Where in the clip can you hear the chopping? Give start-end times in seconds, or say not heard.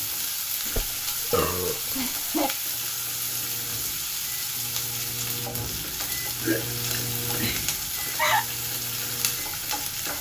not heard.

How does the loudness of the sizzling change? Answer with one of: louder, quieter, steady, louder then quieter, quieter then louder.
steady.